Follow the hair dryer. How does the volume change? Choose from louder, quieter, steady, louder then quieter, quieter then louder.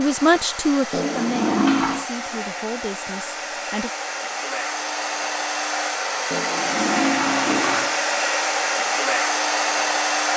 louder.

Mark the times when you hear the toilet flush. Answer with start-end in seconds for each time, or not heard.
0.9-2.0, 6.3-8.0.